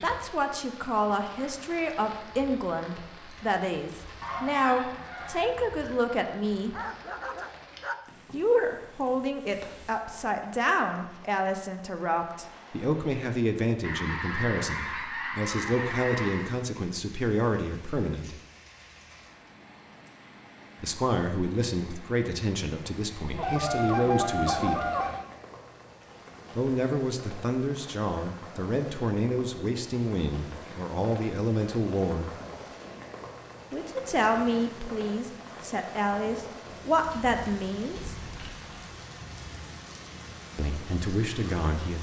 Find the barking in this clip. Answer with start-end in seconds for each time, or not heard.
6.7-8.1.